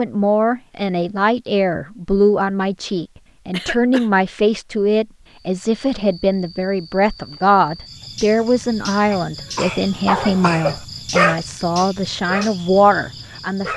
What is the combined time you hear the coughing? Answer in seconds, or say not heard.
2 s.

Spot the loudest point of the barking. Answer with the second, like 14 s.
11 s.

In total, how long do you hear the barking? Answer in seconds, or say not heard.
4 s.